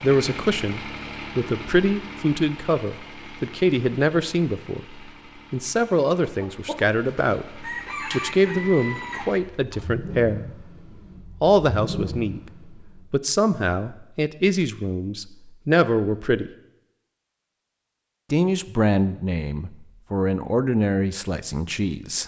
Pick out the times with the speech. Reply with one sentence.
The speech can be heard from 0.0 to 10.6 s, from 11.4 to 16.5 s and from 18.3 to 22.2 s.